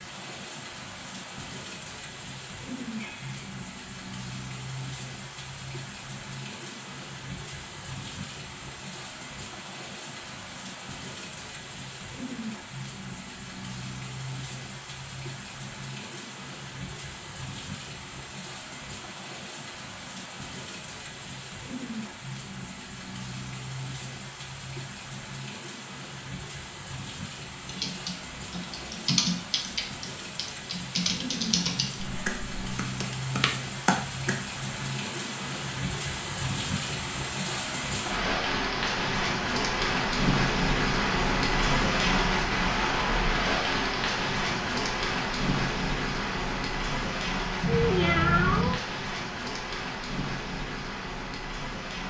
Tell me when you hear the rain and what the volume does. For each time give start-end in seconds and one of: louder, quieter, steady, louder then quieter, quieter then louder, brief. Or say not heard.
0.0-52.0 louder.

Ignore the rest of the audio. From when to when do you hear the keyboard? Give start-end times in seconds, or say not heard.
27.6-34.9.